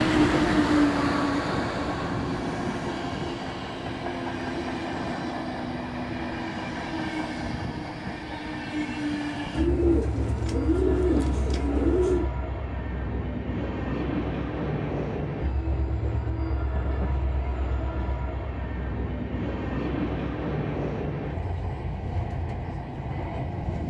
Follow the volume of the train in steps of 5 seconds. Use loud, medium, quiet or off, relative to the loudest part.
loud, medium, medium, medium, medium.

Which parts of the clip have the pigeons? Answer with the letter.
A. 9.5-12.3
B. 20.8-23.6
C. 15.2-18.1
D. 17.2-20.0
A.